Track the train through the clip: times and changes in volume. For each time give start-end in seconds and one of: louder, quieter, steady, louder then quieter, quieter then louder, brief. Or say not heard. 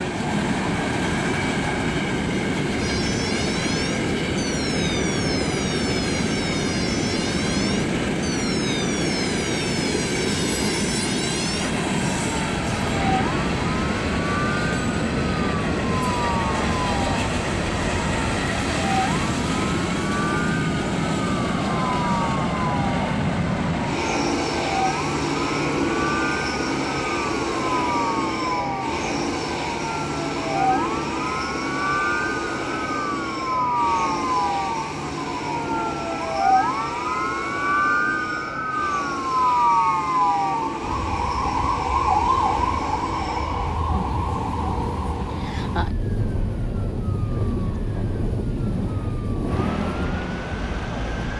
0.0-51.3 quieter.